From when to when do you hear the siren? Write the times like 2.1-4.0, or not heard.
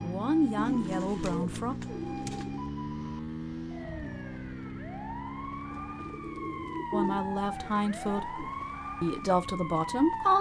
0.0-10.3.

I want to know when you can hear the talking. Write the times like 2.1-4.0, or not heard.
0.0-1.8, 6.9-10.3.